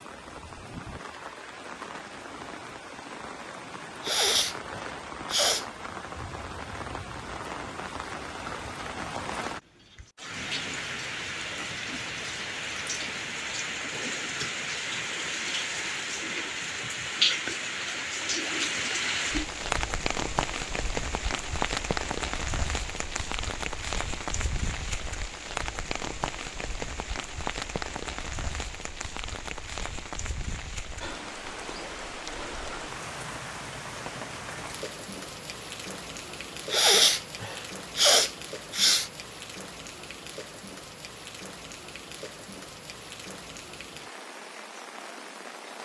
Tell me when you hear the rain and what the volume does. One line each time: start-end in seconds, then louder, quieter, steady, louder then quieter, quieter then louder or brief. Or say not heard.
0.0-45.7 louder then quieter.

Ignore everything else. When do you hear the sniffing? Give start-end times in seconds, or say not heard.
4.0-5.7, 36.7-39.1.